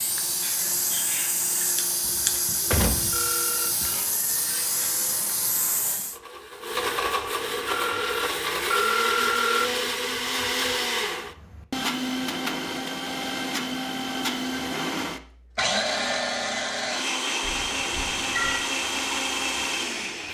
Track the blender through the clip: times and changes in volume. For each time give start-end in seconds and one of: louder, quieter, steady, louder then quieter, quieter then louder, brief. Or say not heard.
0.0-20.3 louder.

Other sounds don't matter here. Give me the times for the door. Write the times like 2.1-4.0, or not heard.
2.0-4.0.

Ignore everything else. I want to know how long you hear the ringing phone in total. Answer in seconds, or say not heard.
4 s.